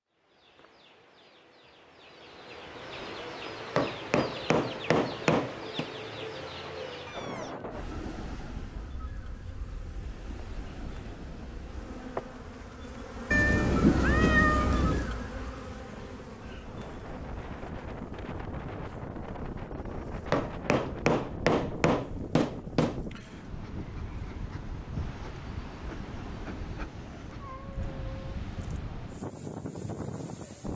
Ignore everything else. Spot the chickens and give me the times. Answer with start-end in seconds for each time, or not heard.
0.1-7.3.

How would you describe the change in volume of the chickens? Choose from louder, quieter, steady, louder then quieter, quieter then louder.
louder.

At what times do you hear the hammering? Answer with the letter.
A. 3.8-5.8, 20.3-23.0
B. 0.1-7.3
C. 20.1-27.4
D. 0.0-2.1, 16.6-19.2
A.